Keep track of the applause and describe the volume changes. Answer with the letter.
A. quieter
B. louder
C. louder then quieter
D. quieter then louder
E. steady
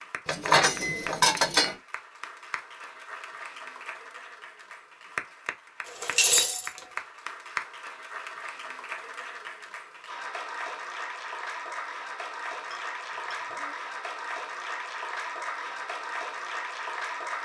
B.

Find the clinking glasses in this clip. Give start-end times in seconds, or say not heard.
0.2-1.8, 5.8-6.8, 12.7-13.8.